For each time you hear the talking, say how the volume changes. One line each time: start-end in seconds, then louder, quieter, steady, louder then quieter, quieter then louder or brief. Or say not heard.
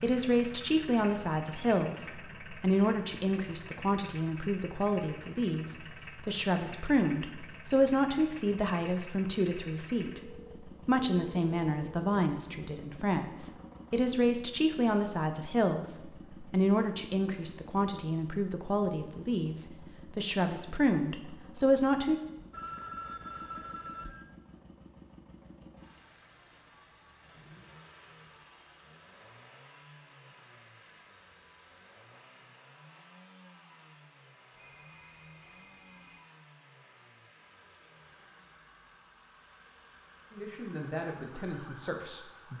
0.0-22.2 steady
40.3-42.5 brief.